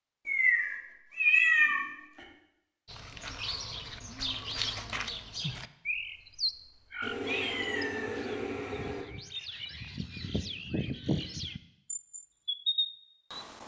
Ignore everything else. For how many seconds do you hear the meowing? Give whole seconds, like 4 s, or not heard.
4 s.